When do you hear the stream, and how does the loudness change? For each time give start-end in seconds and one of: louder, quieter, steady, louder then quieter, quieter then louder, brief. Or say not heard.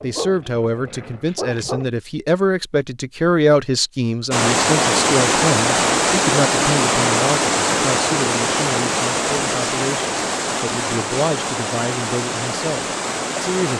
4.3-13.7 quieter.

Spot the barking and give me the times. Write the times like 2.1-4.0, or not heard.
0.0-1.9.